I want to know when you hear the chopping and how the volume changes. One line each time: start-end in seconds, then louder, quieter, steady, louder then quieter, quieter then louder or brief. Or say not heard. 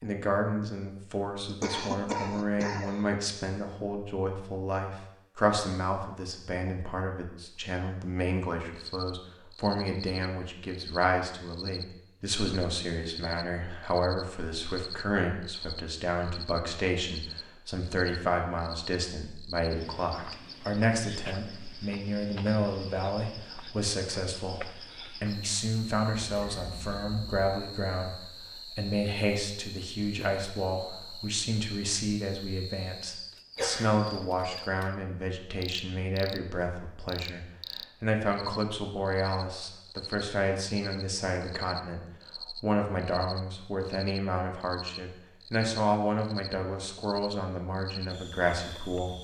not heard.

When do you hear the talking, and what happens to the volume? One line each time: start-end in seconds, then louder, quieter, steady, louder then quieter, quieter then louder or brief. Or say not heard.
0.0-49.1 steady.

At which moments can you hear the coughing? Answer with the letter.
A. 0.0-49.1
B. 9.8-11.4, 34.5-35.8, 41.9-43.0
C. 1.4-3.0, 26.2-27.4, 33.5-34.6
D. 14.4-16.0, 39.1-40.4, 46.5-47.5
C.